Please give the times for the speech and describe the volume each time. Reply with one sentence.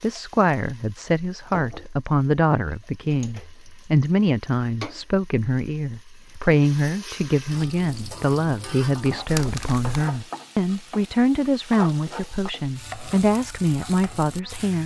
The speech can be heard from 0.0 to 14.8 s, at a steady volume.